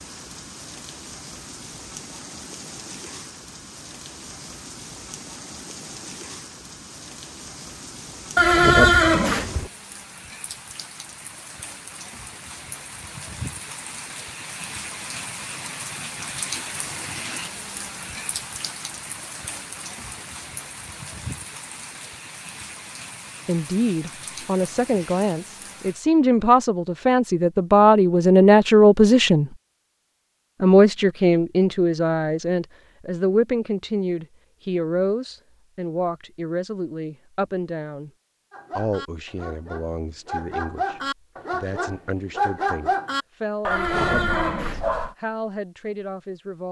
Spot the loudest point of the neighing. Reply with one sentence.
The volume of the neighing peaks at 9 seconds.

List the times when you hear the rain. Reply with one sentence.
The rain can be heard from 0.0 to 26.0 s.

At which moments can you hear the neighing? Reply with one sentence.
You can hear the neighing from 8.3 to 9.7 s and from 43.7 to 44.8 s.